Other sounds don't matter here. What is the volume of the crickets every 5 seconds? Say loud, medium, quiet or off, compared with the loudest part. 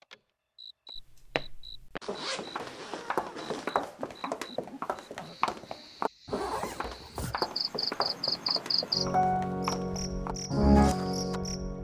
quiet, medium, loud.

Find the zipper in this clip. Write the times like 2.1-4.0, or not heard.
2.0-3.7, 6.2-7.4.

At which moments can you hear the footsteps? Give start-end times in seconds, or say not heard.
0.9-11.4.